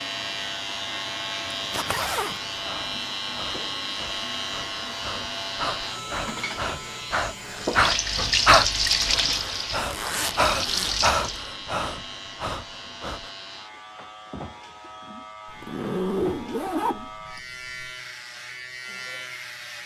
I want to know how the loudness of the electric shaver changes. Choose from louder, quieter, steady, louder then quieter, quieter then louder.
quieter.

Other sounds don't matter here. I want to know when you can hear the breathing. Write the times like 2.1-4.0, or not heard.
1.8-13.3.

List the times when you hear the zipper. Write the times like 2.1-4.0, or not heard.
1.5-2.4, 8.9-11.0, 15.4-17.9.